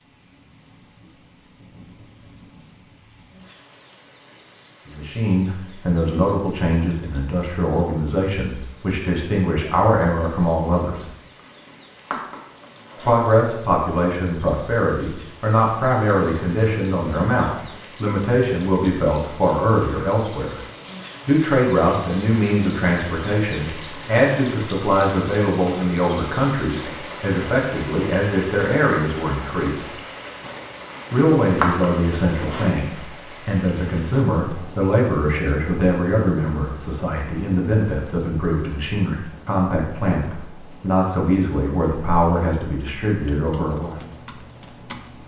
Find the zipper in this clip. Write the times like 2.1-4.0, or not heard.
11.3-13.3, 30.9-32.9.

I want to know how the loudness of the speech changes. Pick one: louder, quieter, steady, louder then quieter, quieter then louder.
steady.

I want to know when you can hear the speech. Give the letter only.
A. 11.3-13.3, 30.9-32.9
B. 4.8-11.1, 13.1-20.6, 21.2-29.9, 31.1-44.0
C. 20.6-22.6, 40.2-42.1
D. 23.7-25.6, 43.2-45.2
B.